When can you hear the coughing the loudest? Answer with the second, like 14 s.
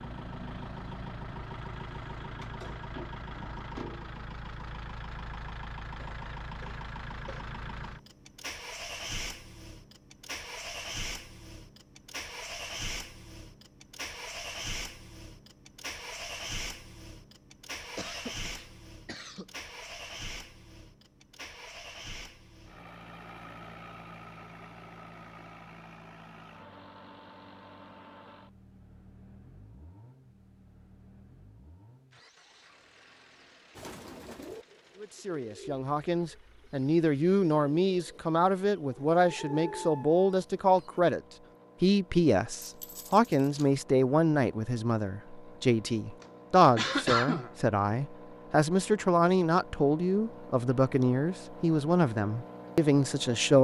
47 s.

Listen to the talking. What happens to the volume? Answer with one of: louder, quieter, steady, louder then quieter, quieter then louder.
steady.